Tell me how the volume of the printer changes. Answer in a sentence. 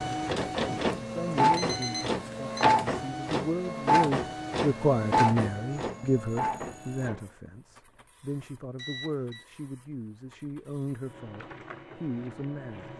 The volume of the printer goes down, then up.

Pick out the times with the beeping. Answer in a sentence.
You can hear the beeping from 1.6 to 2.6 s, from 5.8 to 7.1 s and from 8.8 to 9.4 s.